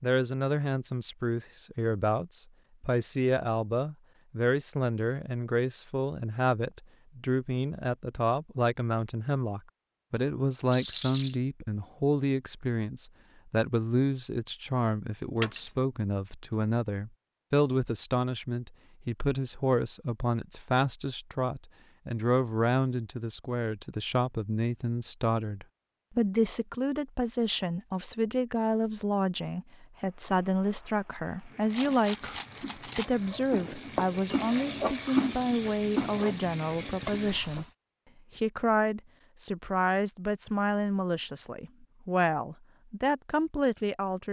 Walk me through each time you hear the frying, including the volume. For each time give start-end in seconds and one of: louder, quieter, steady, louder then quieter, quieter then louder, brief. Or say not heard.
30.0-37.7 louder.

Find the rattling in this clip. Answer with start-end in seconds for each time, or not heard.
10.7-11.4, 15.3-15.8, 31.7-33.1.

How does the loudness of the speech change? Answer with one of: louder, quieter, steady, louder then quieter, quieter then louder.
steady.